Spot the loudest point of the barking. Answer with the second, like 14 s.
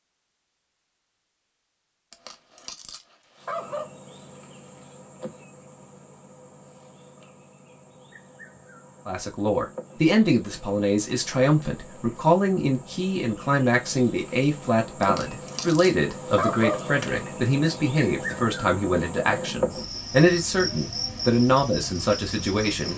17 s.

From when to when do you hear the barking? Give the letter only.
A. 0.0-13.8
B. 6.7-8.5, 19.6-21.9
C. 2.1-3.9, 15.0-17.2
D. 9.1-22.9
C.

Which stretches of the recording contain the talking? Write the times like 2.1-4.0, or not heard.
9.1-22.9.